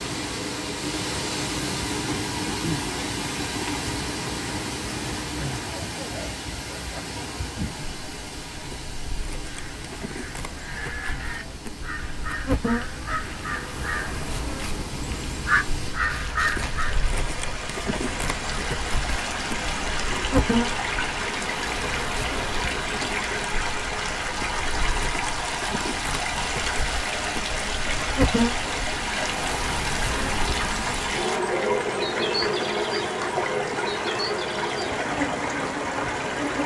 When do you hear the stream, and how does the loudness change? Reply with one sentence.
You can hear the stream from 0.0 to 36.6 s, getting quieter then louder.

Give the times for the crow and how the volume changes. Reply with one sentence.
The crow can be heard from 9.4 to 17.0 s, getting louder.